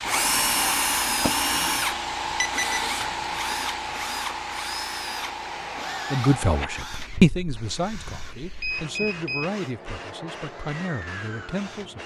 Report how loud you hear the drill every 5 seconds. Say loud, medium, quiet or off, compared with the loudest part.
loud, medium, quiet.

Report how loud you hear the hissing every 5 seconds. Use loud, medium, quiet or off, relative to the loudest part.
loud, medium, medium.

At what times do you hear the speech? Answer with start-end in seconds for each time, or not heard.
6.1-12.0.